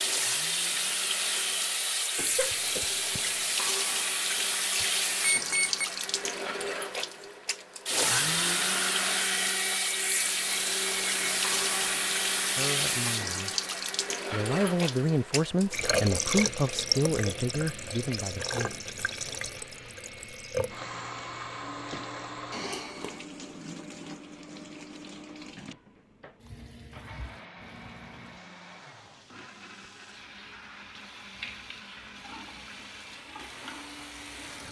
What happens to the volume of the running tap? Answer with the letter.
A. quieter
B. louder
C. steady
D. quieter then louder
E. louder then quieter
A.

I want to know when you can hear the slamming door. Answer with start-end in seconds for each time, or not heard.
not heard.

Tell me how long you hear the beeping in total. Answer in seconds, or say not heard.
3 s.